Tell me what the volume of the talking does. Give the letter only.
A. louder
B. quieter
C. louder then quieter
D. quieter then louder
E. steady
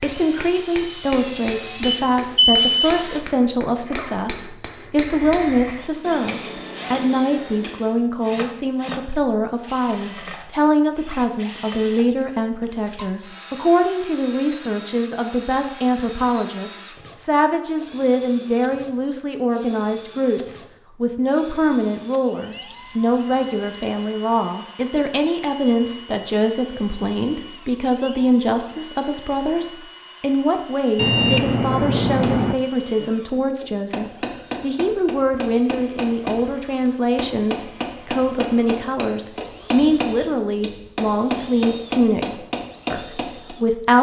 E.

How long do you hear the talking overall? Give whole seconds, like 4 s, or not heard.
44 s.